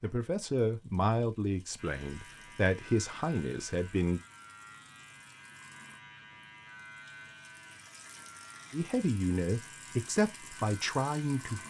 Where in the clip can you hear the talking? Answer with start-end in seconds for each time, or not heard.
0.0-4.2, 8.7-11.6.